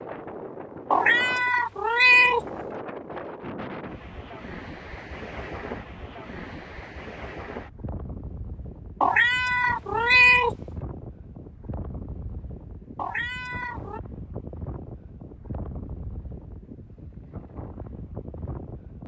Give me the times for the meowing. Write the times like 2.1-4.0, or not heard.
0.9-2.4, 9.0-10.5, 12.9-14.0.